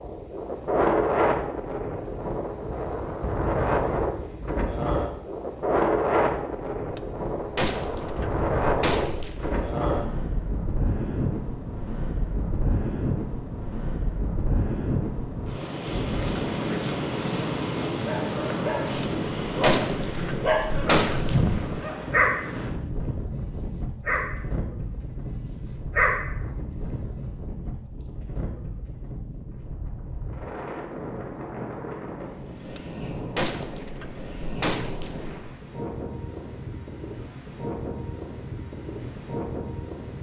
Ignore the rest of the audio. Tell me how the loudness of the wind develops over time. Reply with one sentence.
The volume of the wind goes down.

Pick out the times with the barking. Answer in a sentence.
The barking can be heard from 18.0 to 27.1 s.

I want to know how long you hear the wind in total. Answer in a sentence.
The wind can be heard for 40 seconds in total.